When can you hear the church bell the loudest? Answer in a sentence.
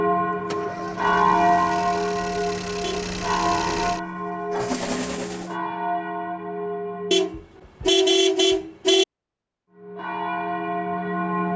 The volume of the church bell peaks at 1 second.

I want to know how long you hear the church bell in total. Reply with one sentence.
You can hear the church bell for 9 seconds altogether.